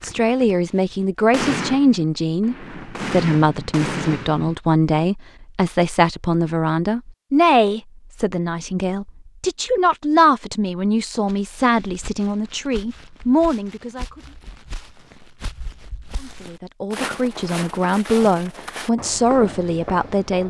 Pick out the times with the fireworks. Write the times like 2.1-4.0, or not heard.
0.0-4.5.